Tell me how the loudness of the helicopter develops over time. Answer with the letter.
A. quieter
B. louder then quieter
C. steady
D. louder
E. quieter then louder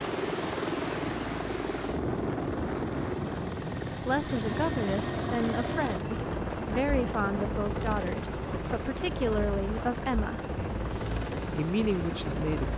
C.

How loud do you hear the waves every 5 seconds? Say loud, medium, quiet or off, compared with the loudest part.
loud, loud, medium.